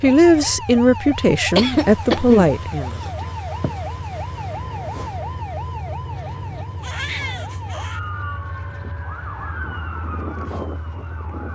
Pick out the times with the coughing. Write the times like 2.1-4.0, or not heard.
1.6-3.8.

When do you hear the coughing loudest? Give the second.
2 s.